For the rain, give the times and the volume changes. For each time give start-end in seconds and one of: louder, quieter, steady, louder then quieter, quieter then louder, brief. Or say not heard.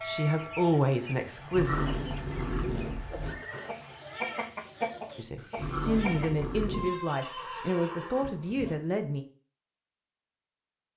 not heard.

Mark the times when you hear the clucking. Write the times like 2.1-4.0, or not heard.
0.0-6.5.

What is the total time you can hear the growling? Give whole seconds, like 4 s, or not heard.
3 s.